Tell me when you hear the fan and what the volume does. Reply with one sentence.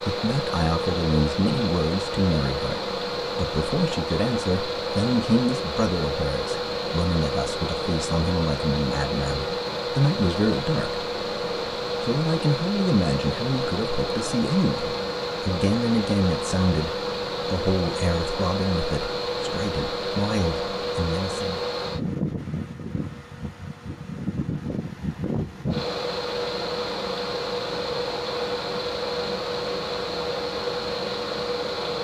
The fan can be heard from 0.0 to 31.9 s, at a steady volume.